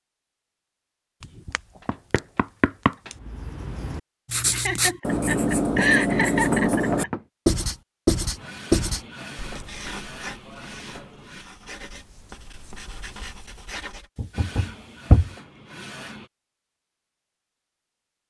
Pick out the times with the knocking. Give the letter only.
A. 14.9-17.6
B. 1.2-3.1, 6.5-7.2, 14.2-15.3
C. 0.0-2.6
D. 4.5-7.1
B.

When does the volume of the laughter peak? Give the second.
6 s.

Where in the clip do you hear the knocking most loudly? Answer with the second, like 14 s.
15 s.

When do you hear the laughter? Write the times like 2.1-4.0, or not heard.
4.5-7.1.